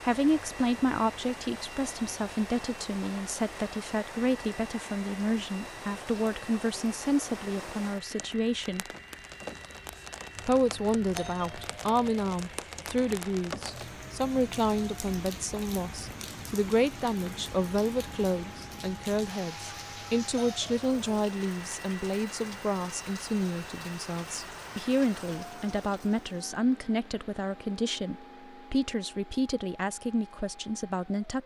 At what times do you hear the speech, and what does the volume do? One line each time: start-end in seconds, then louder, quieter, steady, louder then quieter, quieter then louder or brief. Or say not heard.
0.0-8.8 steady
10.4-31.4 steady.